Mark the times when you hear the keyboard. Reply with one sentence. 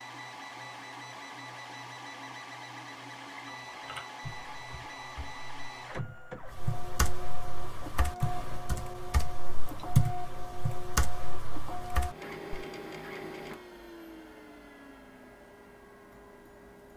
You can hear the keyboard from 3.6 to 12.7 s.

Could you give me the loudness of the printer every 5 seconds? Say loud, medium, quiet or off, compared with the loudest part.
loud, loud, loud, medium.